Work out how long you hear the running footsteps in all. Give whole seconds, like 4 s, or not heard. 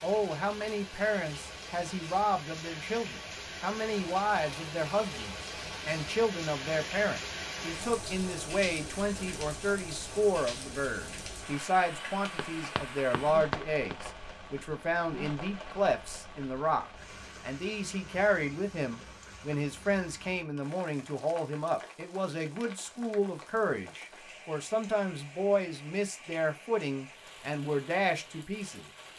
2 s.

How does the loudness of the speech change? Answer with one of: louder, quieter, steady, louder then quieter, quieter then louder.
steady.